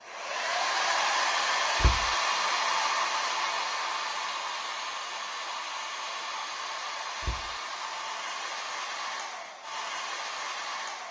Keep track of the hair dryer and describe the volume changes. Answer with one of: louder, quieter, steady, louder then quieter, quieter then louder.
quieter.